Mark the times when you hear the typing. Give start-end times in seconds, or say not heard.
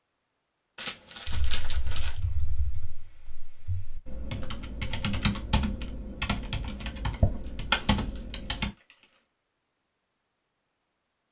1.2-8.7.